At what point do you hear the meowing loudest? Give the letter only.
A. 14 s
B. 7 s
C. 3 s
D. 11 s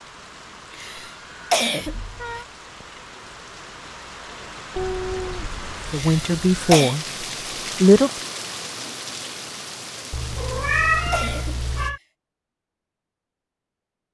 D.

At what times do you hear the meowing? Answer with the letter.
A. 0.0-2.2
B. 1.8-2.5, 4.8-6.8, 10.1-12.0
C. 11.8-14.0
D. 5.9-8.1
B.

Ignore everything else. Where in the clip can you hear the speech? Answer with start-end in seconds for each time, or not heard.
5.9-8.1.